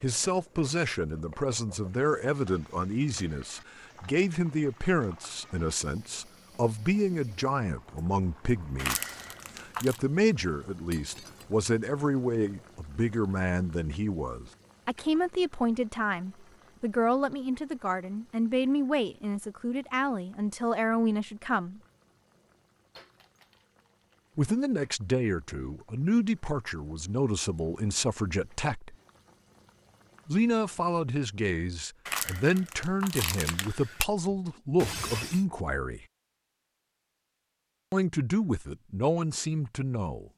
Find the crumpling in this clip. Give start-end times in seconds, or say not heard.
8.8-10.0, 32.0-34.0.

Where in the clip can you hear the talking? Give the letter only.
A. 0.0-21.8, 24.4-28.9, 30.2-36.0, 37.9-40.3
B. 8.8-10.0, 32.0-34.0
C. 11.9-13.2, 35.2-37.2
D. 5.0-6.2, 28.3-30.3
A.